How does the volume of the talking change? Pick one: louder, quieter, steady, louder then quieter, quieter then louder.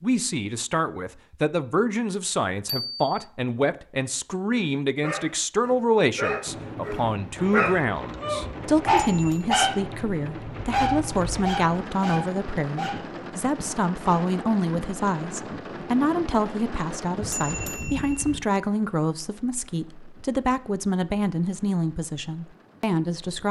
steady.